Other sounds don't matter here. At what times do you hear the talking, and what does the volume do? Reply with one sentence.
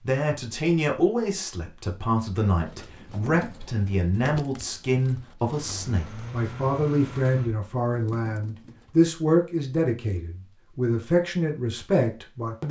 You can hear the talking from 0.1 to 12.6 s, at a steady volume.